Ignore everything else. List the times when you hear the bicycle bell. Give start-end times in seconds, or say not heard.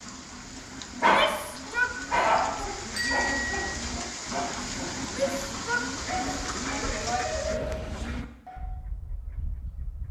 3.0-3.7.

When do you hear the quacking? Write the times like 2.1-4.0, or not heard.
0.0-10.0.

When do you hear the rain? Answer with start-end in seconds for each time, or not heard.
0.0-8.2.